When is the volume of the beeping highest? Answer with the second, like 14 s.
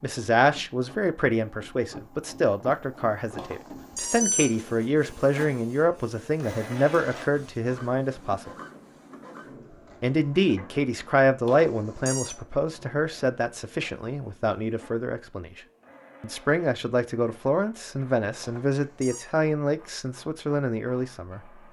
4 s.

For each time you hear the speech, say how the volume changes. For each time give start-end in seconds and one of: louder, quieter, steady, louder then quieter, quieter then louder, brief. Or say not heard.
0.0-8.5 steady
10.0-15.6 quieter
16.2-21.6 steady.